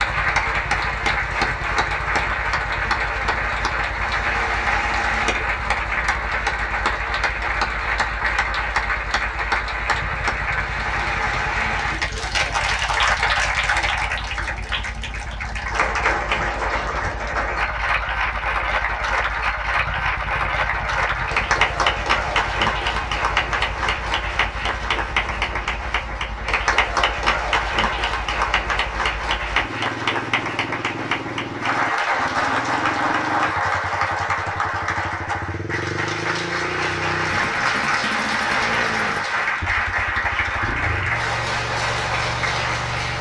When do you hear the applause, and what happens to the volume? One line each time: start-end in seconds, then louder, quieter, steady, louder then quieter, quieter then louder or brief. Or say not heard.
0.0-43.1 steady.